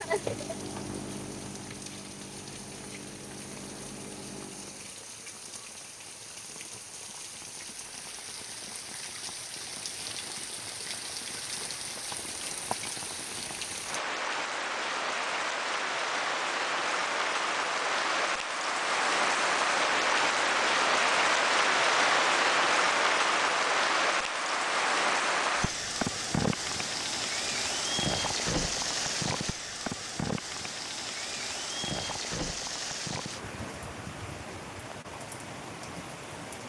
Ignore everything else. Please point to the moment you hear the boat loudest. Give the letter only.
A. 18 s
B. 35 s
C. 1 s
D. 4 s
C.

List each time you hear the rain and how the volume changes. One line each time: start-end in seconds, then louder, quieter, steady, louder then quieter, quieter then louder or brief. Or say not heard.
0.0-36.6 louder then quieter.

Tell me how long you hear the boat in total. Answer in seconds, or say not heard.
5 s.